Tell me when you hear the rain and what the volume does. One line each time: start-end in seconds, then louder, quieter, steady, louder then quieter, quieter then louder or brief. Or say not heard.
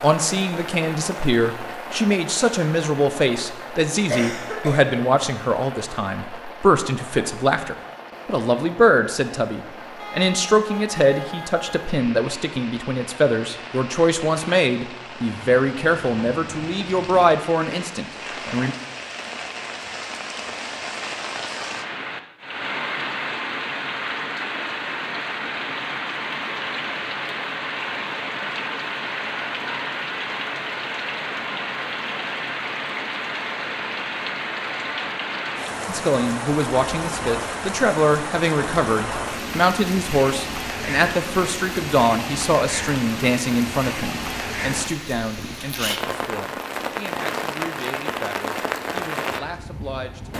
0.0-50.3 louder.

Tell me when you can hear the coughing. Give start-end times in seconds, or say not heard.
4.1-4.8.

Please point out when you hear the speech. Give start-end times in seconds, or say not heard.
0.0-18.8, 35.9-50.3.